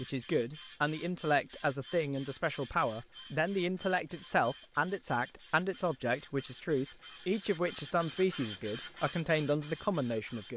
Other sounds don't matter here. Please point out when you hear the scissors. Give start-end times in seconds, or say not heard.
not heard.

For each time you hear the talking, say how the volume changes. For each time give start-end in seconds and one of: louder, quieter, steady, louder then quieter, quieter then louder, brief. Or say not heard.
0.0-10.5 steady.